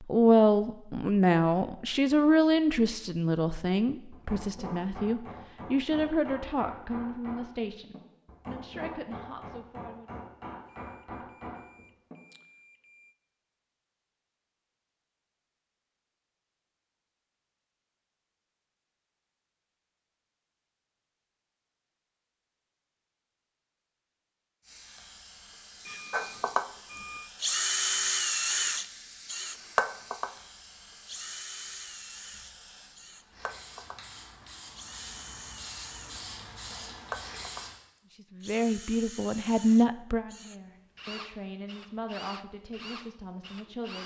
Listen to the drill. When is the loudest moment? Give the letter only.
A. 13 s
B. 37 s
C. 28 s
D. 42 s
C.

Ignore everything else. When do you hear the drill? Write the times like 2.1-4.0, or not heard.
26.1-44.0.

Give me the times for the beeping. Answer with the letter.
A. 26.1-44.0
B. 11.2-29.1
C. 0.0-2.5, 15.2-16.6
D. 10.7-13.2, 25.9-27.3
D.